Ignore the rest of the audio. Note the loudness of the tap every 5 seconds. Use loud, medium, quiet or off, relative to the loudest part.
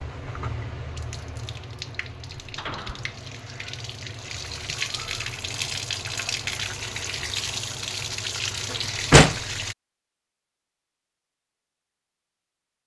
medium, loud, off.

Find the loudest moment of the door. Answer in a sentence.
The volume of the door peaks at 9 seconds.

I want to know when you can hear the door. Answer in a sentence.
You can hear the door from 2.4 to 3.2 s and from 8.7 to 9.4 s.